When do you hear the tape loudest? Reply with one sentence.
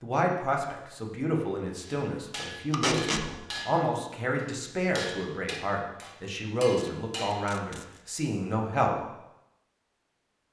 The loudest moment of the tape is at 3 seconds.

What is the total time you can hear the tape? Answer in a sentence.
You can hear the tape for 2 seconds altogether.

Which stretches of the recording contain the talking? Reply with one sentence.
The talking can be heard from 0.0 to 8.9 s.